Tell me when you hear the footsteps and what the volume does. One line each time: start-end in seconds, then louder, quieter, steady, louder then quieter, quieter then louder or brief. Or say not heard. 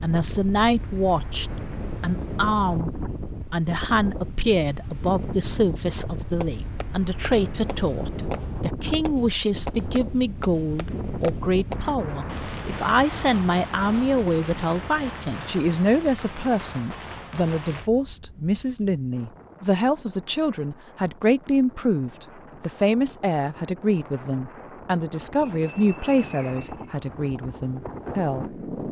not heard.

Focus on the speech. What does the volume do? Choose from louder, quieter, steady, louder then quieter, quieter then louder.
steady.